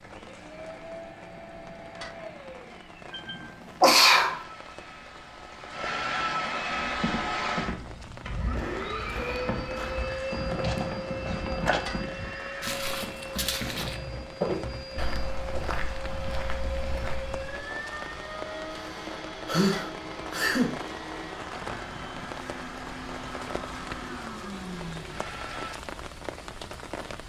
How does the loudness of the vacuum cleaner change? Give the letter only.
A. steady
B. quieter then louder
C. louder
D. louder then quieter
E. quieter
D.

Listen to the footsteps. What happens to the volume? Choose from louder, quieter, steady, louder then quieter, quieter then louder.
louder then quieter.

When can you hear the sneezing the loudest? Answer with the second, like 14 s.
4 s.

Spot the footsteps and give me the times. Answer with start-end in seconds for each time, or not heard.
6.8-17.6.